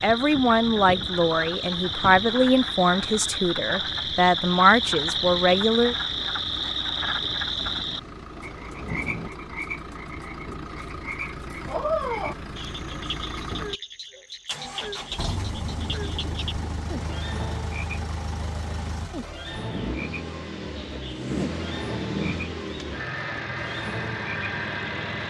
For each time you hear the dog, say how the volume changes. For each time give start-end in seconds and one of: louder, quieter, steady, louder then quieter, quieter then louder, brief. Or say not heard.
not heard.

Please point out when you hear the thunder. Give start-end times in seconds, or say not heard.
7.5-9.3, 15.2-17.1.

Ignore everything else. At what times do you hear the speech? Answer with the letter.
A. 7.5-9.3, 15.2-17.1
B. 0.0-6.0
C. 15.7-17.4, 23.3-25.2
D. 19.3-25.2
B.